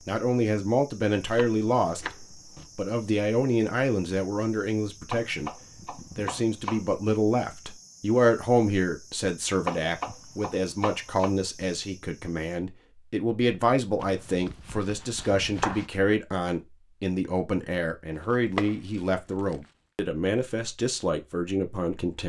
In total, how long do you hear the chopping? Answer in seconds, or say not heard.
8 s.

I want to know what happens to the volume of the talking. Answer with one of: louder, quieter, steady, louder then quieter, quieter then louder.
steady.